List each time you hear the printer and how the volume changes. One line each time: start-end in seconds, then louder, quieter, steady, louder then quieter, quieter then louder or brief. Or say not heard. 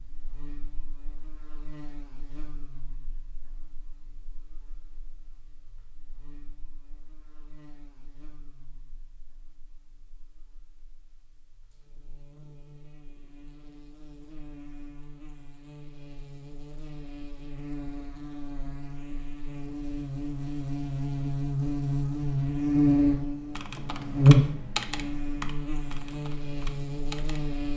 not heard.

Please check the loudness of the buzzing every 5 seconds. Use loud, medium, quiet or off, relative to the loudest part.
quiet, quiet, quiet, quiet, loud, medium.